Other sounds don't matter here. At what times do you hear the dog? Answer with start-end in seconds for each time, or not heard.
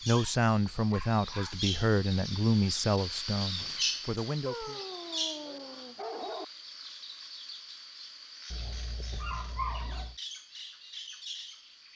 0.1-1.6, 4.5-6.5, 8.5-10.2.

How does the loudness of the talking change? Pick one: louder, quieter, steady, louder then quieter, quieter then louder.
quieter.